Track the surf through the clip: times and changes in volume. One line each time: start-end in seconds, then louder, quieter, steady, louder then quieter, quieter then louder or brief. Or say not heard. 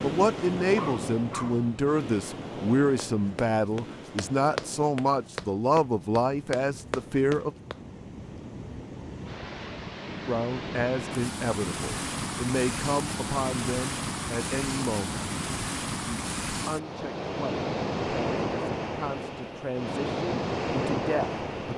0.0-21.7 quieter then louder.